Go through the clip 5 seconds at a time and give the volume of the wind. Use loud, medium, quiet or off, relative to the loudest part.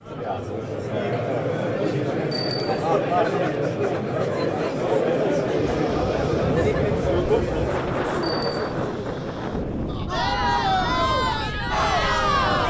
off, loud, loud.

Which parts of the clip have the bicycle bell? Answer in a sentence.
You can hear the bicycle bell from 2.3 to 2.8 s and from 8.2 to 8.8 s.